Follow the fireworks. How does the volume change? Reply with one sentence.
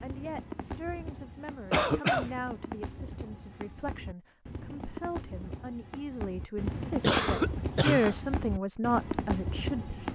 The volume of the fireworks goes up.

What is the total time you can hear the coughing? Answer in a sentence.
You can hear the coughing for 2 seconds altogether.